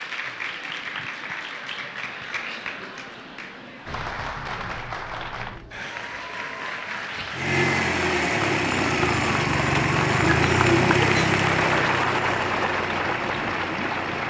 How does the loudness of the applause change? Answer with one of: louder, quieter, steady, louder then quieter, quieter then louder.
louder.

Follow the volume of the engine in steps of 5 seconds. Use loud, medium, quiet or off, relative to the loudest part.
off, loud, loud.